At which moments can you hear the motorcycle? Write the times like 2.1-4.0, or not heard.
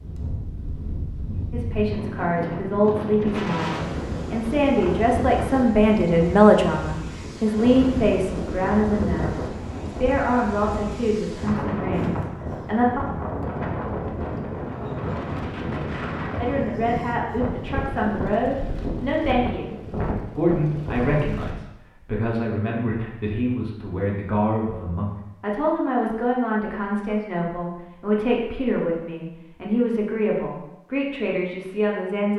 not heard.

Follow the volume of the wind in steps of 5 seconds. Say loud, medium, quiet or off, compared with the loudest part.
loud, loud, loud, loud, loud, off, off.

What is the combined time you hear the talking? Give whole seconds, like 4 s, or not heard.
27 s.